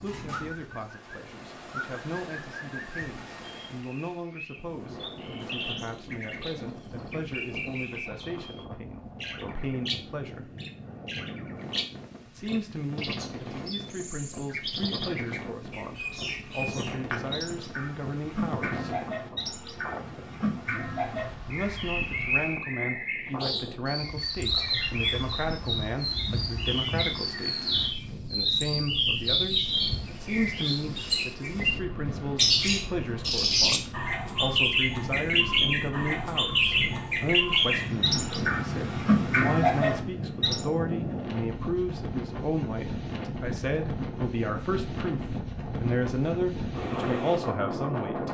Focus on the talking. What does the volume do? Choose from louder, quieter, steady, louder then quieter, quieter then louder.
louder.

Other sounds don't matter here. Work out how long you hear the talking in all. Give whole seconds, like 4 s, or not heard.
44 s.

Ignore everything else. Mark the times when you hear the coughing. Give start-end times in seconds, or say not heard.
not heard.